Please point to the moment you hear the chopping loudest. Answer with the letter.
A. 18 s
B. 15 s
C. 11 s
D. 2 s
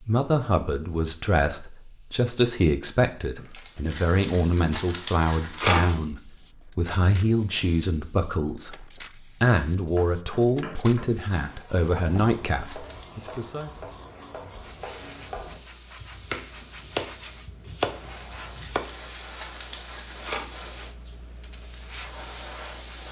A.